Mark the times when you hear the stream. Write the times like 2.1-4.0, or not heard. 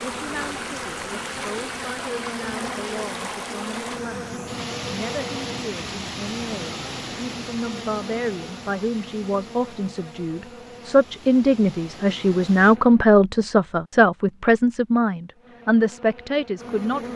0.0-12.8.